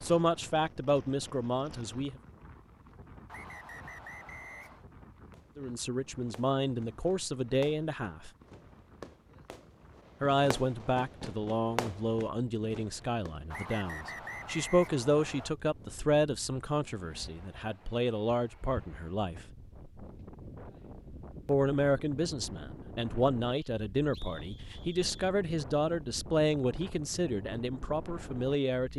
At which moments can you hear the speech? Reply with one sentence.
You can hear the speech from 0.0 to 2.2 s, from 5.5 to 8.3 s, from 10.2 to 19.4 s and from 21.4 to 28.9 s.